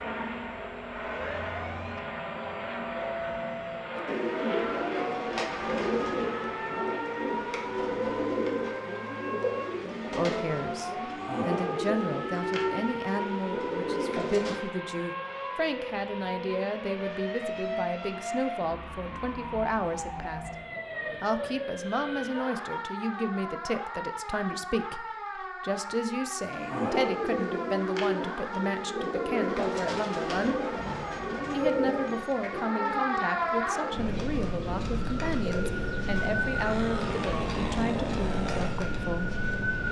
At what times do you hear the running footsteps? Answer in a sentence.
You can't hear the running footsteps here.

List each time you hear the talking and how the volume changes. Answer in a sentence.
You can hear the talking from 10.1 to 20.5 s, at a steady volume; from 21.2 to 30.6 s, at a steady volume; and from 31.5 to 39.3 s, at a steady volume.